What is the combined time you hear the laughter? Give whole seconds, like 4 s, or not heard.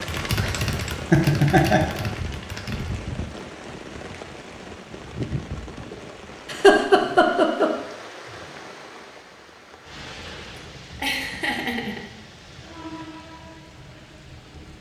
4 s.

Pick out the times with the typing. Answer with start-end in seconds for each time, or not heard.
0.0-3.0.